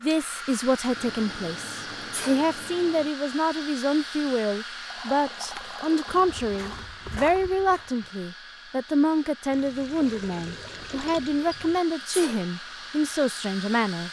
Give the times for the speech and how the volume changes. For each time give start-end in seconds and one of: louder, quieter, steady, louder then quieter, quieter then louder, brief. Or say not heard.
0.0-14.0 steady.